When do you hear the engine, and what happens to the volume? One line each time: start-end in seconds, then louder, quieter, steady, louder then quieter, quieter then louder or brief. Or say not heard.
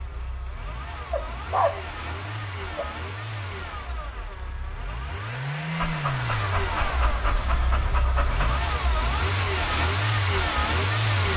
0.0-11.3 louder.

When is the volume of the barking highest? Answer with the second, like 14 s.
2 s.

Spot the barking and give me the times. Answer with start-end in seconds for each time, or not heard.
1.1-2.9, 5.8-8.7.